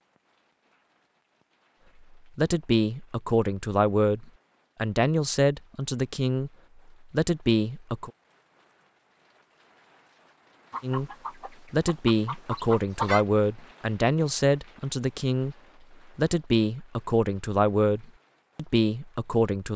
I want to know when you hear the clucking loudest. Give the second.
13 s.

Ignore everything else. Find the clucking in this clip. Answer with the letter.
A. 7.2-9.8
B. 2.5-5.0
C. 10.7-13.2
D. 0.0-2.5
C.